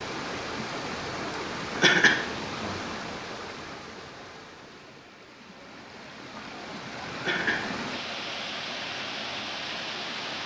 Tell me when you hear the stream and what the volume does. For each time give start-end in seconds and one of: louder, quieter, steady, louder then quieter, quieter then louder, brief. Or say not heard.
0.0-10.4 quieter then louder.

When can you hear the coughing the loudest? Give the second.
2 s.